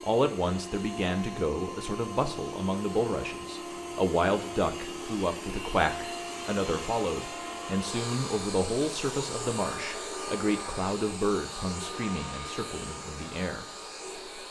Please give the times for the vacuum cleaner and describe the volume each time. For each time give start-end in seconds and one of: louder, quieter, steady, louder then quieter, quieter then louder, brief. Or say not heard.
0.0-14.4 steady.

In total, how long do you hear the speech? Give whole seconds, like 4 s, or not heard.
14 s.